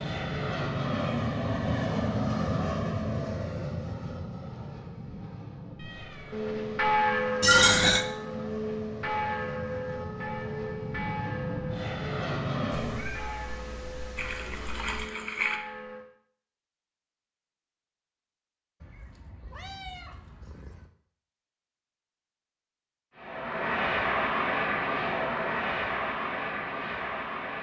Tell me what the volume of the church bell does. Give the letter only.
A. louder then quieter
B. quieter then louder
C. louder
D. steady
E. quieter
E.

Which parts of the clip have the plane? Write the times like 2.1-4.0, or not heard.
0.0-13.2, 23.1-27.5.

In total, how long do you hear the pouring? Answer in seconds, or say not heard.
2 s.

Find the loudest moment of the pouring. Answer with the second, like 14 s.
8 s.